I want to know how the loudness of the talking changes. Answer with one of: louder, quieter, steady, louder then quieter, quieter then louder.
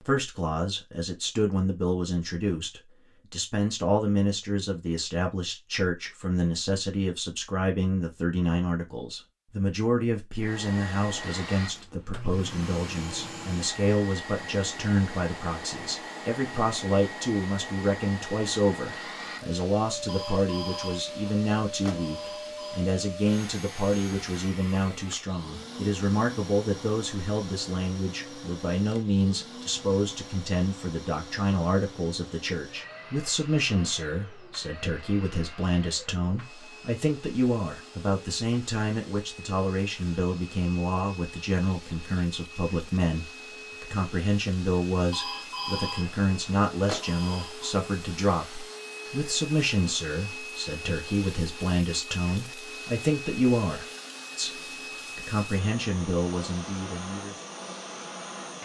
steady.